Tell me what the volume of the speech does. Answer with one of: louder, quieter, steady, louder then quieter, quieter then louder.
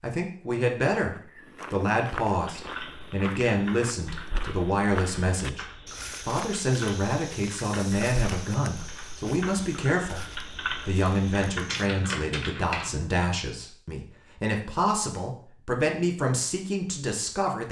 steady.